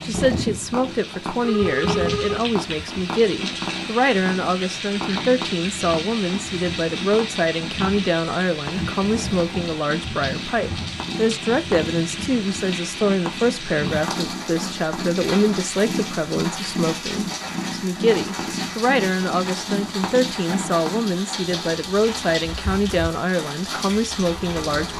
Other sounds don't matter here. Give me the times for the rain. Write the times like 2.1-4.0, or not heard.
0.0-24.9.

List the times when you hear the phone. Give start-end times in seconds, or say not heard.
1.4-2.4.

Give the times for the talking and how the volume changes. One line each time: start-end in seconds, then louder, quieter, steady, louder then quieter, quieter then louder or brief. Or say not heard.
0.0-24.9 steady.